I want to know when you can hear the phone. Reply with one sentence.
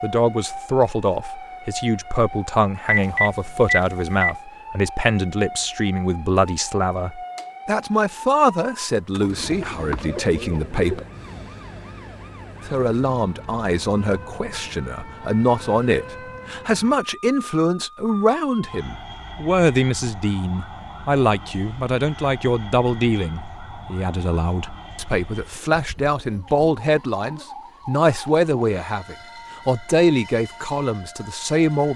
You can hear the phone from 2.9 to 4.3 s.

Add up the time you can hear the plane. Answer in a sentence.
You can't hear the plane here.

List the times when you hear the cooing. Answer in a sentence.
You can hear the cooing from 9.1 to 11.1 s.